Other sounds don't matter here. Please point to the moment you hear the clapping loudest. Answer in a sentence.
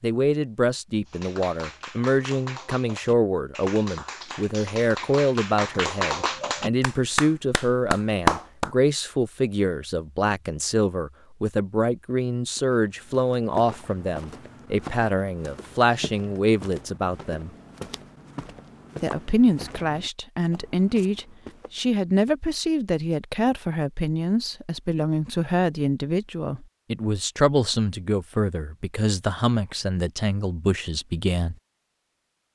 The loudest moment of the clapping is at 8 seconds.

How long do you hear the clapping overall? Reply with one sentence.
You can hear the clapping for 8 seconds altogether.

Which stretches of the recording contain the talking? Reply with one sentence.
You can hear the talking from 0.0 to 17.5 s and from 19.0 to 31.6 s.